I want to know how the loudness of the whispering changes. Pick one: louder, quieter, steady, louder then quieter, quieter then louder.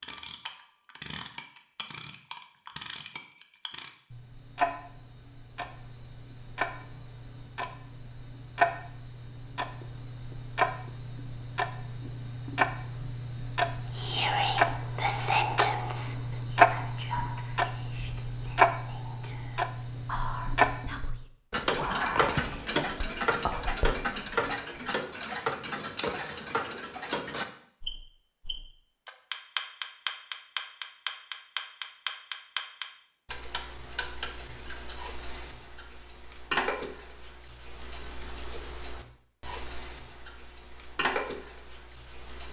quieter then louder.